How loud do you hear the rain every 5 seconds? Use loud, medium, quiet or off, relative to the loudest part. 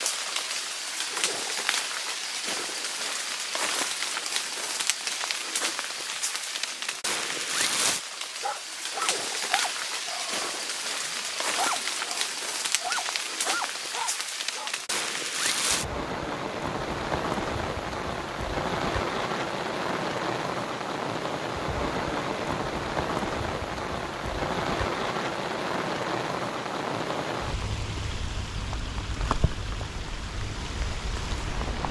loud, loud, loud, loud, loud, loud, medium.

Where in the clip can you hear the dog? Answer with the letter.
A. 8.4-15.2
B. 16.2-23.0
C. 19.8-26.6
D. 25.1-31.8
A.